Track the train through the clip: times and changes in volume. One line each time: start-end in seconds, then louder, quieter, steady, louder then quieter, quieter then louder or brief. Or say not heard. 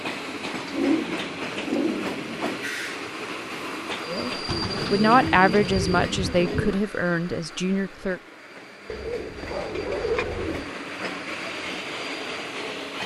0.0-13.0 quieter then louder.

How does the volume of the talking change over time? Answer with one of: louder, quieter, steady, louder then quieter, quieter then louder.
quieter.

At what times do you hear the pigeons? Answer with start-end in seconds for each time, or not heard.
0.7-2.6, 4.5-6.8, 8.8-10.7.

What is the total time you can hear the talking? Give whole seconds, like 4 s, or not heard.
4 s.